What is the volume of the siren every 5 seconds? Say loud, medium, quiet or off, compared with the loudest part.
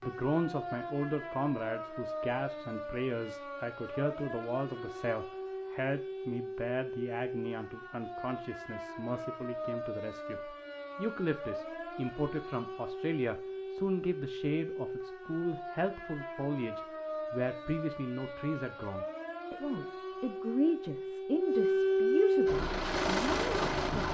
medium, medium, medium, medium, loud.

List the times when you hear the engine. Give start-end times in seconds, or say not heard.
22.4-24.0.